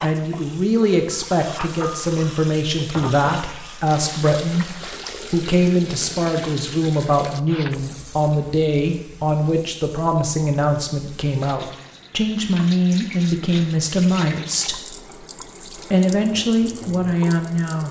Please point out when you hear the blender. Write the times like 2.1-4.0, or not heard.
not heard.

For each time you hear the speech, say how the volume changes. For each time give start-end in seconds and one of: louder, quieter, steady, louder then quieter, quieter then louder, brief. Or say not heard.
0.0-14.9 steady
15.8-17.8 brief.